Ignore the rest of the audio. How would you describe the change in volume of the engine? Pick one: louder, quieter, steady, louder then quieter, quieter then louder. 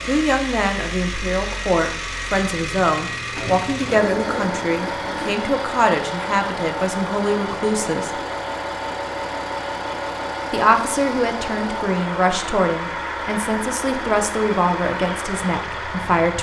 steady.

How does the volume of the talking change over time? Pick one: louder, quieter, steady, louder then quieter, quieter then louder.
steady.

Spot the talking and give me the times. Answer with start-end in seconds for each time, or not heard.
0.1-8.2, 10.5-16.3.